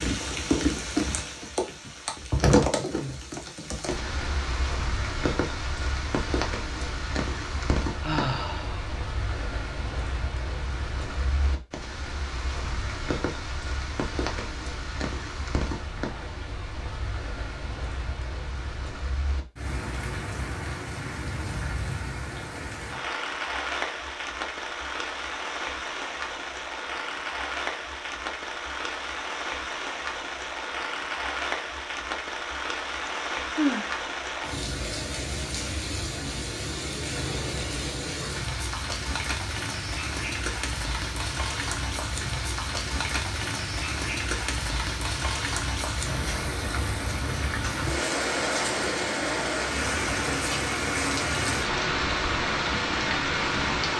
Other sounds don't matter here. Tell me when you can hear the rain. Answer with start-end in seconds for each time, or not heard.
0.0-53.9.